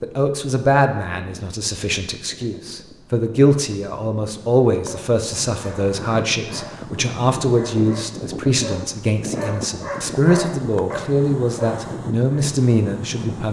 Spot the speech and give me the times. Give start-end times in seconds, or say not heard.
0.0-13.4.